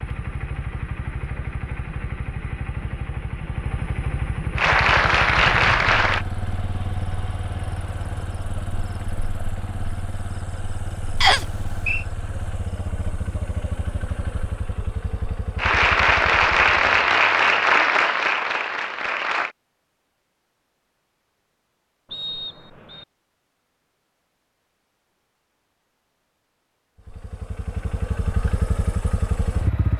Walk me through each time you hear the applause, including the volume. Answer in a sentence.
You can hear the applause briefly from 4.5 to 6.2 s; and from 15.6 to 19.6 s, getting quieter.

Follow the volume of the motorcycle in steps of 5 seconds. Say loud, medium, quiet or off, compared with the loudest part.
loud, loud, medium, medium, off, loud.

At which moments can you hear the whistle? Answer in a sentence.
You can hear the whistle from 11.2 to 12.0 s and from 22.1 to 23.1 s.